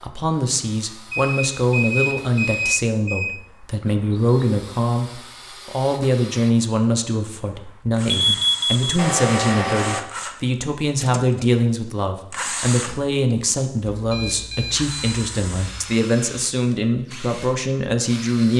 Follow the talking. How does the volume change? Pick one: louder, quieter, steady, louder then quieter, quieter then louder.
steady.